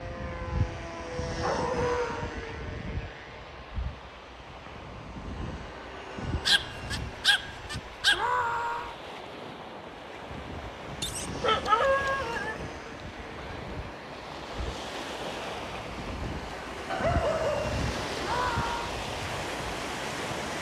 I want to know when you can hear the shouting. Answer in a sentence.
The shouting can be heard from 1.6 to 2.4 s, from 8.1 to 8.9 s and from 18.2 to 18.9 s.